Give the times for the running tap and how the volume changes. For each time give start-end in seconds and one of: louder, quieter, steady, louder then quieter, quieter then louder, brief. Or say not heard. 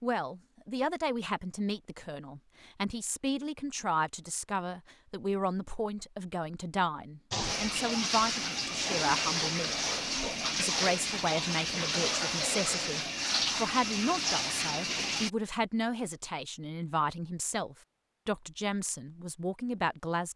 7.3-15.3 steady.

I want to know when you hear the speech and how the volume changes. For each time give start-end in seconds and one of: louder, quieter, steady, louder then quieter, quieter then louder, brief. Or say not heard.
0.0-9.9 steady
10.6-20.3 steady.